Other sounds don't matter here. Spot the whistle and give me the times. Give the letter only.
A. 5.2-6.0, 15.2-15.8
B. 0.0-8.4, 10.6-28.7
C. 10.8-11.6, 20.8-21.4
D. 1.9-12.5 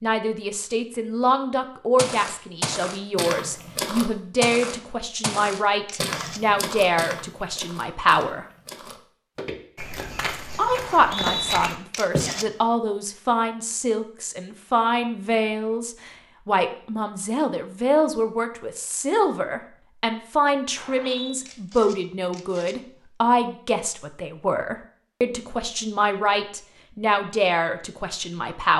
C.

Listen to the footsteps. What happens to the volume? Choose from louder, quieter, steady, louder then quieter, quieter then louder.
quieter then louder.